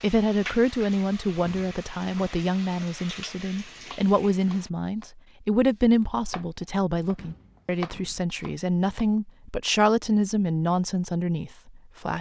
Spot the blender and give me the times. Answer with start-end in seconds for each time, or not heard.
not heard.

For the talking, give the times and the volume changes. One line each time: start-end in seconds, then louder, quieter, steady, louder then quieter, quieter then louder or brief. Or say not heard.
0.0-12.1 steady.